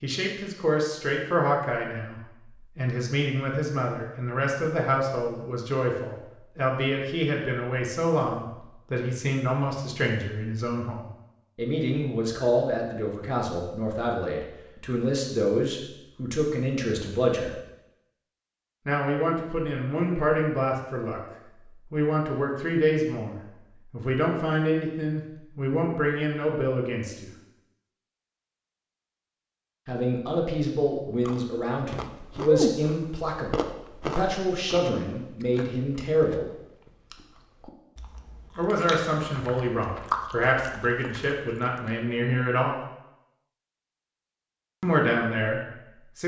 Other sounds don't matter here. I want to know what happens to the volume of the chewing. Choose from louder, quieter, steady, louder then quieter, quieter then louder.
quieter then louder.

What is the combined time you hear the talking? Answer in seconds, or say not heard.
38 s.